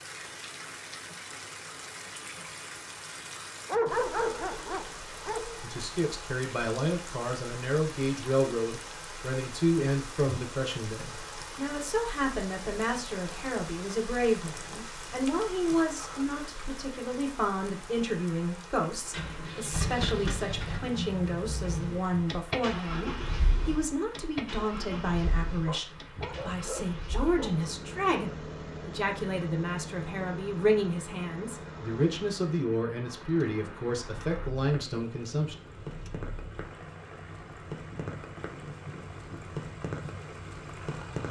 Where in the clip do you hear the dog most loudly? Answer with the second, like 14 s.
4 s.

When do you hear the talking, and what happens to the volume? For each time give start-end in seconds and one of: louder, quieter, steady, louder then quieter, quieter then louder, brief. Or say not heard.
5.6-35.5 steady.